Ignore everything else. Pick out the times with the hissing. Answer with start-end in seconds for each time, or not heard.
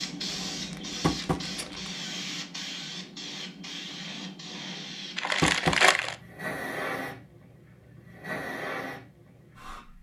0.0-9.9.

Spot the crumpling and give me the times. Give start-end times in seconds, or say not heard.
0.5-1.9, 5.2-6.2.